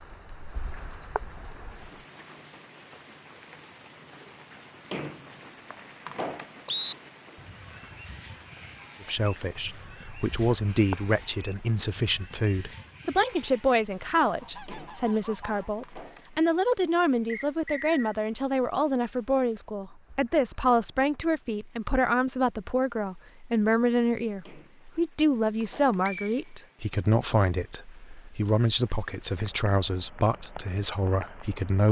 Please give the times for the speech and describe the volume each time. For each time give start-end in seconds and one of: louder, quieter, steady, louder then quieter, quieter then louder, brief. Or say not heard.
9.0-31.8 steady.